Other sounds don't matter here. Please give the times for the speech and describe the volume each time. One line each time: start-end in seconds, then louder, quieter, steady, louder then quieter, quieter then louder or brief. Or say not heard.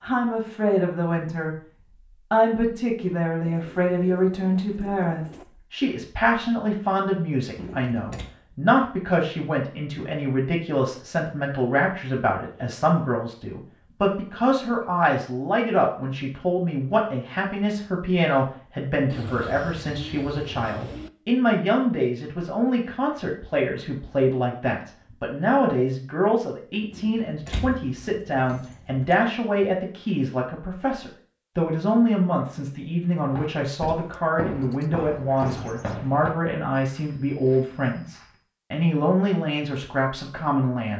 0.0-40.9 steady.